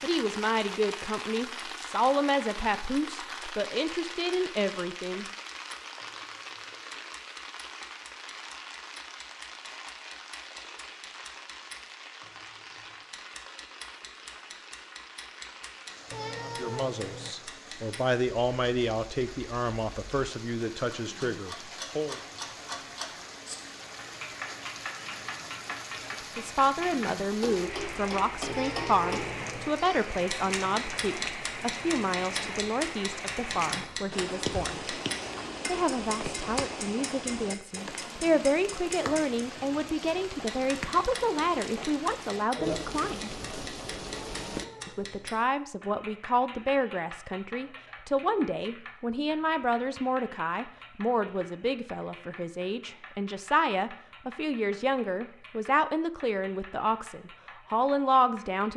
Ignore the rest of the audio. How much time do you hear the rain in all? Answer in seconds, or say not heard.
45 s.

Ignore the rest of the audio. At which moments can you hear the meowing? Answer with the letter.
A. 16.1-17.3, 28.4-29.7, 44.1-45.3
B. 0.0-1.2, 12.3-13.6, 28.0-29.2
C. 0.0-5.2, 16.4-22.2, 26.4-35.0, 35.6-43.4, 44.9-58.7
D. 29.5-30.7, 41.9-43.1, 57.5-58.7
A.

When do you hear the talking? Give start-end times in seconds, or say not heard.
0.0-5.2, 16.4-22.2, 26.4-35.0, 35.6-43.4, 44.9-58.7.